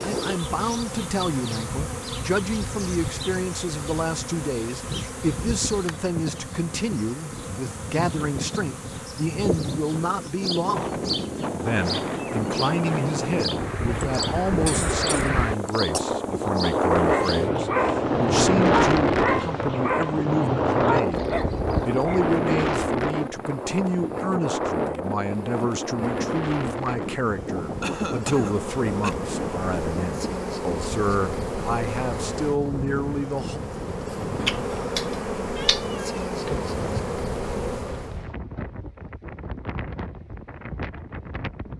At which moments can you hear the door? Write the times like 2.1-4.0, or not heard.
not heard.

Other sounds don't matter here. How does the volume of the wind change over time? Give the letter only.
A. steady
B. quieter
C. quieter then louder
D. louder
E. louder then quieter
E.